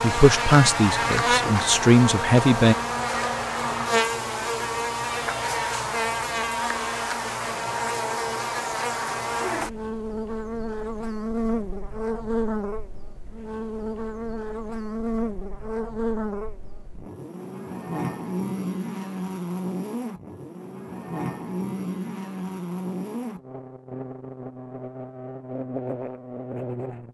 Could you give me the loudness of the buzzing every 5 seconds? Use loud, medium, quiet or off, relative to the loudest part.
loud, loud, medium, medium, medium, medium.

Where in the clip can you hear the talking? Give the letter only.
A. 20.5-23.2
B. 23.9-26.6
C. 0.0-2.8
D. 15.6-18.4
C.